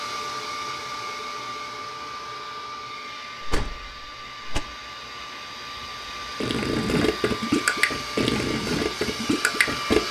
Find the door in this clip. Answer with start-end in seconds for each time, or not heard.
3.4-4.6.